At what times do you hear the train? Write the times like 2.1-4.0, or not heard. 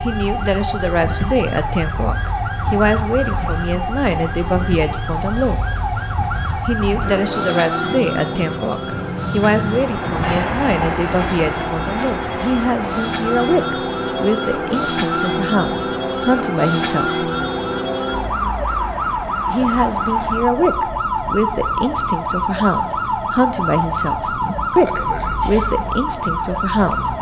0.0-20.5.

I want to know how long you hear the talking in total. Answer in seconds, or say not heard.
24 s.